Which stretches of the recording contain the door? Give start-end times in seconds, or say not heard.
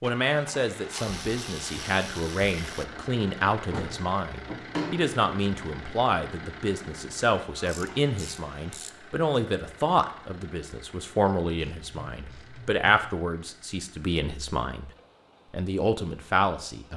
3.7-5.2.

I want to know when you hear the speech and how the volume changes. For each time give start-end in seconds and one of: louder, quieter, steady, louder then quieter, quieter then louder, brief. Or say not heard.
0.0-14.9 steady
15.5-16.9 brief.